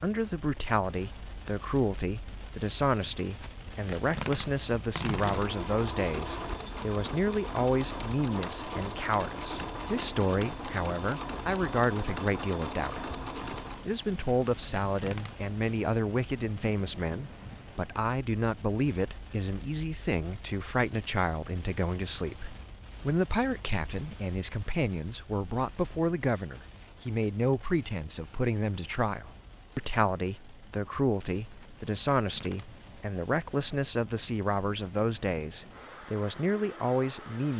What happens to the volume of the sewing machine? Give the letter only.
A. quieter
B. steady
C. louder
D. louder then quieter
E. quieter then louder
B.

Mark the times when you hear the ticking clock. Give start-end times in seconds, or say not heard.
not heard.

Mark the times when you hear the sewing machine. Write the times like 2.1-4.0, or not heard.
5.0-13.9.